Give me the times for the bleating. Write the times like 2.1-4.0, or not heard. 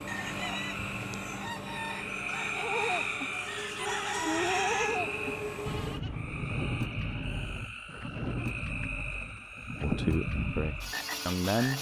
2.5-10.5.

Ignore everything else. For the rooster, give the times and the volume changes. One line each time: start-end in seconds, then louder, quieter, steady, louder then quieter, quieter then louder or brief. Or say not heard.
0.1-5.0 louder.